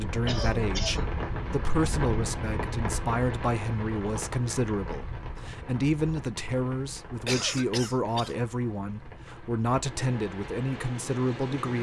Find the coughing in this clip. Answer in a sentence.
You can hear the coughing from 0.2 to 1.1 s and from 7.2 to 8.4 s.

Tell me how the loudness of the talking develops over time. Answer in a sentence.
The loudness of the talking stays about the same.